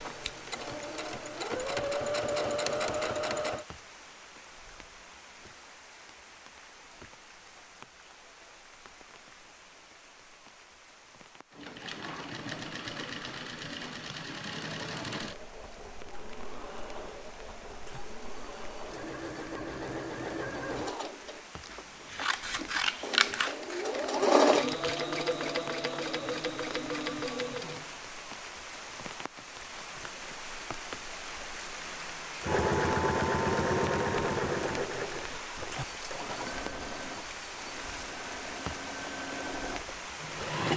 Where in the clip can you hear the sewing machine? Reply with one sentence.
The sewing machine can be heard from 0.0 to 3.6 s, from 11.5 to 28.1 s and from 32.4 to 40.7 s.